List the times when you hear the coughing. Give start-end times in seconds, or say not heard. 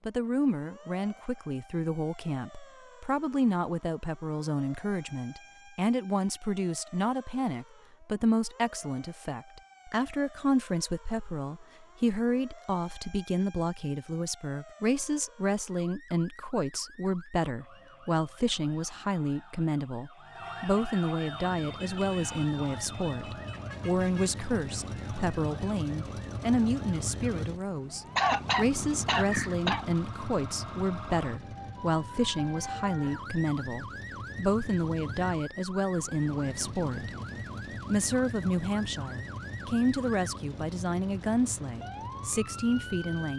28.1-29.9.